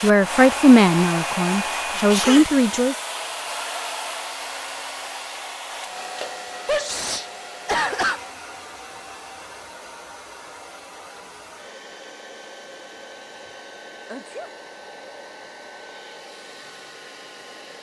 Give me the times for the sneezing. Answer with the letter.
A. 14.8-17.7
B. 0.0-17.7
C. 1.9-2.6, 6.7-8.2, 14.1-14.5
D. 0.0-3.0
C.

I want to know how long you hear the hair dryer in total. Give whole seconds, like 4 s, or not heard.
18 s.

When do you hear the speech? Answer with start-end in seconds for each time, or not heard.
0.0-3.0.